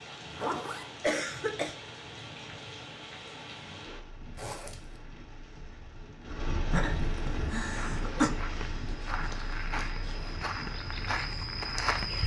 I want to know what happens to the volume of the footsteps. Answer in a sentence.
The volume of the footsteps goes up.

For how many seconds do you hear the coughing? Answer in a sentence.
You can hear the coughing for 2 seconds altogether.